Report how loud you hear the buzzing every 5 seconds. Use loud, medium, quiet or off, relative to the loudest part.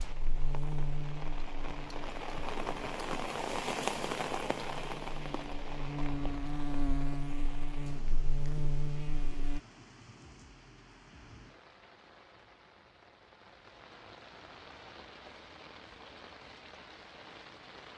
medium, loud, off, off.